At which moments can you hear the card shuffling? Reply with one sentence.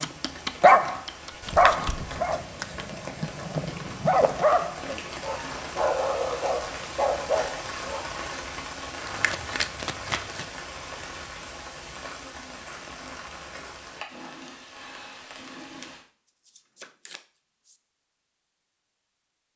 You can hear the card shuffling from 1.4 to 2.9 s, from 9.1 to 10.4 s and from 15.8 to 17.8 s.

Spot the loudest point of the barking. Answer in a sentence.
The volume of the barking peaks at 1 second.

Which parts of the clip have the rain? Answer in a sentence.
You can hear the rain from 0.0 to 16.1 s.